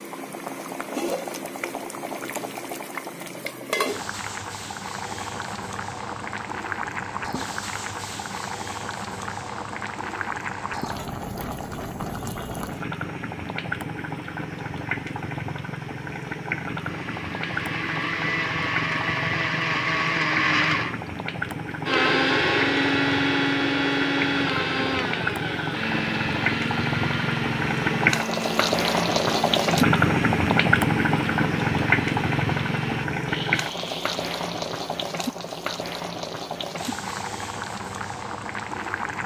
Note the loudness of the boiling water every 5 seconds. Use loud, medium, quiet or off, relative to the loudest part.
medium, medium, medium, medium, medium, loud, loud, medium.